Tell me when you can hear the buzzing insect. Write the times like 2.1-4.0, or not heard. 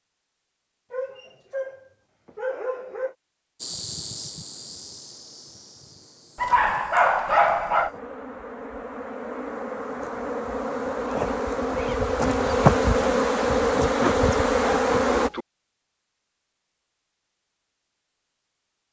3.6-15.3.